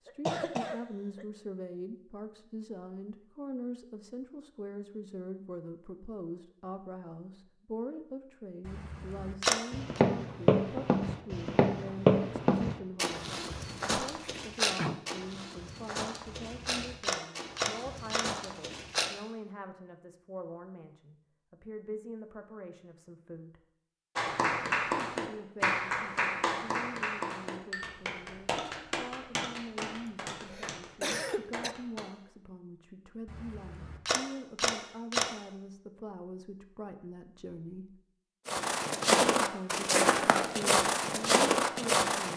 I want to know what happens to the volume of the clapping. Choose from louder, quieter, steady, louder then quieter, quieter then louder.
quieter.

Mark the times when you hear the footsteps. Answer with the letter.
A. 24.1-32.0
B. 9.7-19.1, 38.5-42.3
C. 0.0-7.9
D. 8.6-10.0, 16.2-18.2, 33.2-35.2
B.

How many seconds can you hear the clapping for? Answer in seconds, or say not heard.
8 s.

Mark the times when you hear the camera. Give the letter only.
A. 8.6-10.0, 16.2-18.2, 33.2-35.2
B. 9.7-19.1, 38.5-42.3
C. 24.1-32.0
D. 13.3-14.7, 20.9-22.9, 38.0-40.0
A.